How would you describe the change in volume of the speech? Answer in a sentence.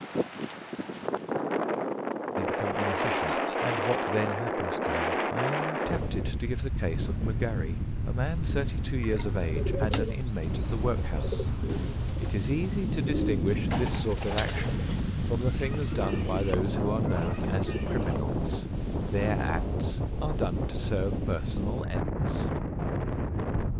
The loudness of the speech stays about the same.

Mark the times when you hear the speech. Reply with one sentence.
The speech can be heard from 2.4 to 11.4 s and from 12.2 to 22.5 s.